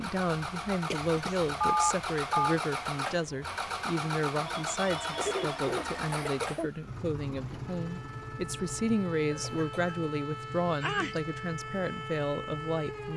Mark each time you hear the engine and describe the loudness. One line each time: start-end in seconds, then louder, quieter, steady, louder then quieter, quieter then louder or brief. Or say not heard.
0.0-13.1 quieter.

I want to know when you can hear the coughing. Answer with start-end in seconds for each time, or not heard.
0.9-1.4, 4.8-6.7, 9.3-9.9.